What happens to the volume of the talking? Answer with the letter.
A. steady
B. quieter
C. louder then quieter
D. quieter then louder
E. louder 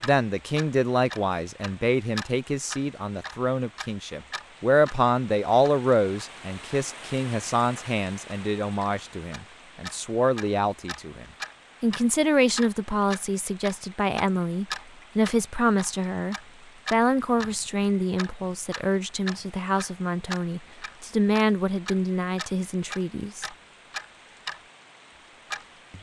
A.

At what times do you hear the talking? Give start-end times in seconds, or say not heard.
0.0-23.4.